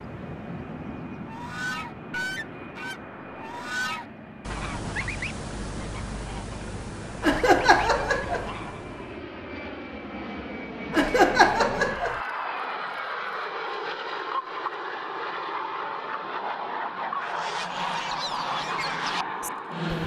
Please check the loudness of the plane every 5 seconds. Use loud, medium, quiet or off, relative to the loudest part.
medium, medium, loud, loud.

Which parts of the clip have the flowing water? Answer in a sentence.
The flowing water can't be heard in this clip.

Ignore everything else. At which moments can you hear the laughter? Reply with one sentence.
The laughter can be heard from 7.2 to 8.5 s and from 10.9 to 12.2 s.